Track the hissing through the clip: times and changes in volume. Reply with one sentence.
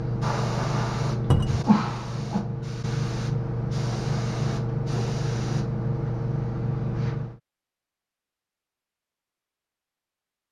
The hissing can be heard from 0.0 to 7.4 s, at a steady volume.